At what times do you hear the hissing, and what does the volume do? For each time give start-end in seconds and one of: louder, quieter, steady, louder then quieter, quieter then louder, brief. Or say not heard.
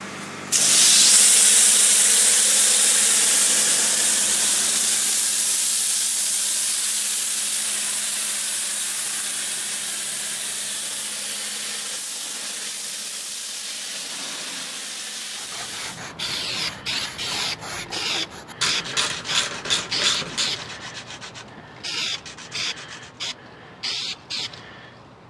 0.0-25.2 quieter.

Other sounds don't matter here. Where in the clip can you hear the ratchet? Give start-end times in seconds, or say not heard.
18.6-20.6.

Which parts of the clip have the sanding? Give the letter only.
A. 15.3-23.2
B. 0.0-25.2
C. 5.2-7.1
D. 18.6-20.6
A.